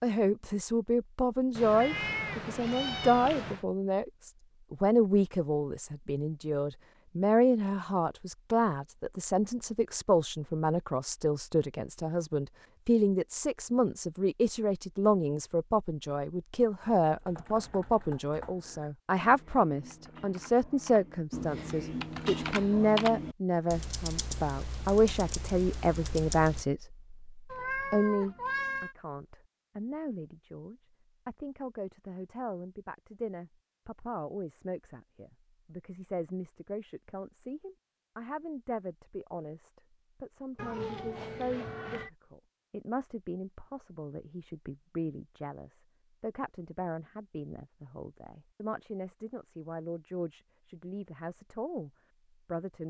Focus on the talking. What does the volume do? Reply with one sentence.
The loudness of the talking goes down.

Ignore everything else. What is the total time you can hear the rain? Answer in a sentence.
You can't hear the rain here.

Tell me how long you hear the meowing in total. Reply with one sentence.
The meowing can be heard for 5 seconds in total.